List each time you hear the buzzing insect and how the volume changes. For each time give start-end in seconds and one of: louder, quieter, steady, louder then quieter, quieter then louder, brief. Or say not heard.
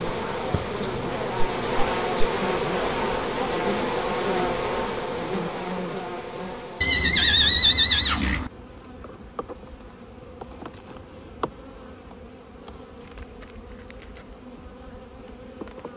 0.0-15.9 quieter.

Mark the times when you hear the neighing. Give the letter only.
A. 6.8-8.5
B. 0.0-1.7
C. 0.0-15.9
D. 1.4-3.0
A.